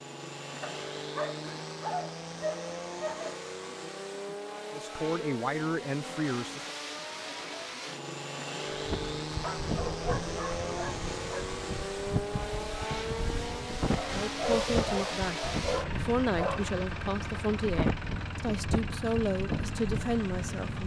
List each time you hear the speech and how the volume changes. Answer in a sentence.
You can hear the speech briefly from 4.7 to 6.8 s; and from 14.1 to 20.8 s, at a steady volume.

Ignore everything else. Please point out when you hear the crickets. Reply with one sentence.
You can't hear the crickets here.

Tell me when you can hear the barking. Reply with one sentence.
The barking can be heard from 0.6 to 3.4 s, from 9.4 to 11.4 s and from 13.9 to 16.7 s.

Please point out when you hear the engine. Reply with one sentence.
The engine can be heard from 0.0 to 20.8 s.